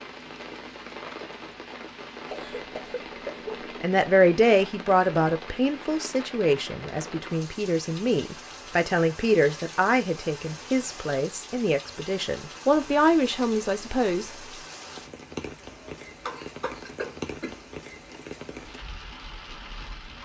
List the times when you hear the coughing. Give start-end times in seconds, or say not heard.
2.3-3.6, 15.7-17.6.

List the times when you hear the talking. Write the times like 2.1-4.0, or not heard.
3.8-14.3.